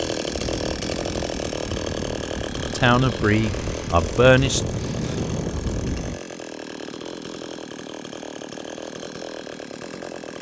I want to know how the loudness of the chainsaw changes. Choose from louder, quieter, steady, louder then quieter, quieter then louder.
quieter.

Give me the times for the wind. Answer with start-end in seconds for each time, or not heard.
0.0-6.2.